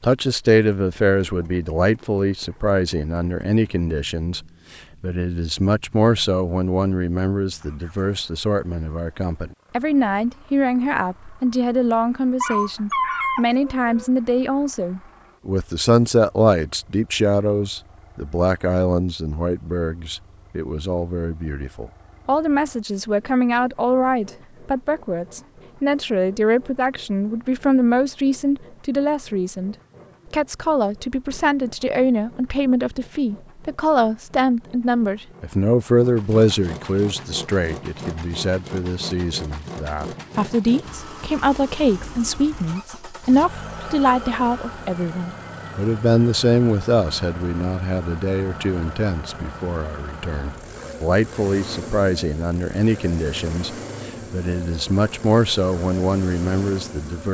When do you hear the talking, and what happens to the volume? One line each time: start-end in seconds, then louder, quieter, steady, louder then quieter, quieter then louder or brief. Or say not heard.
0.0-57.2 steady.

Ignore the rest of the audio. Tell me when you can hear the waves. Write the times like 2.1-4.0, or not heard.
not heard.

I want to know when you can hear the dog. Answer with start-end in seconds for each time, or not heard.
12.4-14.1.